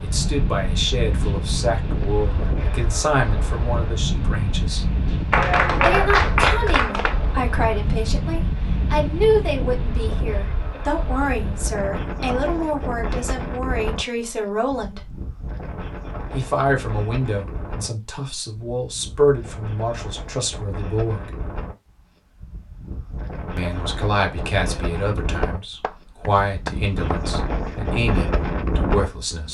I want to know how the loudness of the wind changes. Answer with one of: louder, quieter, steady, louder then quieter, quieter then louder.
quieter then louder.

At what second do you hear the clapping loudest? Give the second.
6 s.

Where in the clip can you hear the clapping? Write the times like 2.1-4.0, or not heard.
5.3-7.2, 25.4-27.2.